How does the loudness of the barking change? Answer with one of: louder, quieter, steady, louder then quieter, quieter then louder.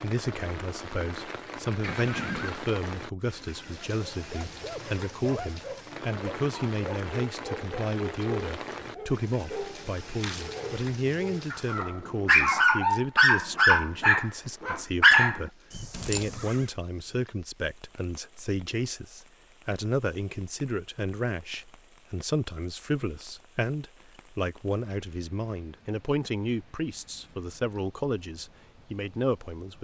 louder.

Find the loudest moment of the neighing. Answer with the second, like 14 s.
2 s.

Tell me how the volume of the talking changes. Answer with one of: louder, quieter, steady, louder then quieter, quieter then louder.
steady.